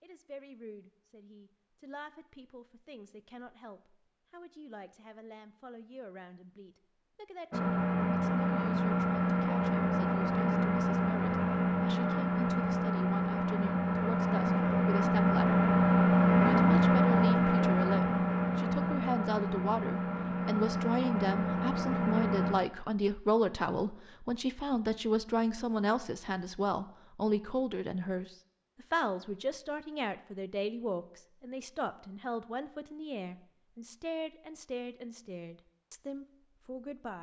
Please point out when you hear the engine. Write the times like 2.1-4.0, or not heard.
7.5-22.6.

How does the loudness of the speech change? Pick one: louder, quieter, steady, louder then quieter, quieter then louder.
louder then quieter.